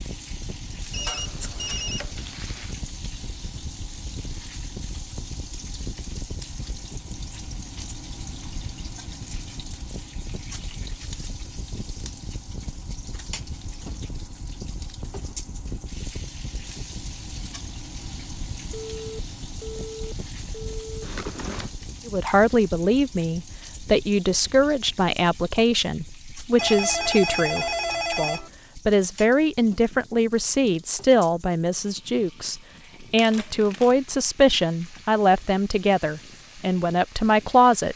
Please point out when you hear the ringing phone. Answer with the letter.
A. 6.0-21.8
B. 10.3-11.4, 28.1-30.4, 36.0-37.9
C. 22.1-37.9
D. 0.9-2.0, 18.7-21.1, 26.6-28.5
D.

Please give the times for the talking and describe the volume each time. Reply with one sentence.
The talking can be heard from 22.1 to 37.9 s, at a steady volume.